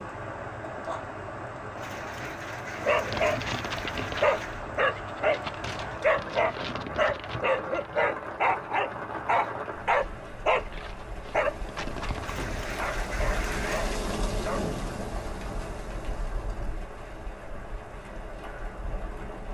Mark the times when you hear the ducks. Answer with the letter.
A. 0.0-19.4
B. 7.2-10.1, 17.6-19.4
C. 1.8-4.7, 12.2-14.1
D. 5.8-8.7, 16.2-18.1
C.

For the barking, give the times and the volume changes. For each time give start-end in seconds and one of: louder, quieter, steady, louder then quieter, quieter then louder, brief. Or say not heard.
2.8-14.7 quieter.